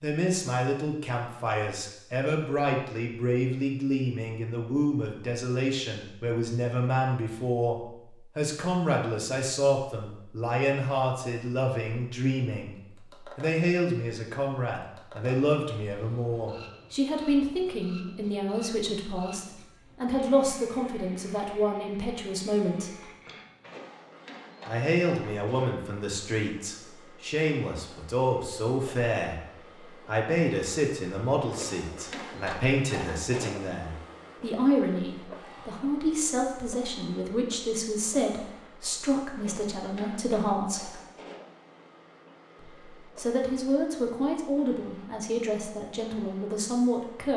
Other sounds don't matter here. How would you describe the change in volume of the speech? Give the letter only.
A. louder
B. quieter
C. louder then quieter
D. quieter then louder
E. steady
E.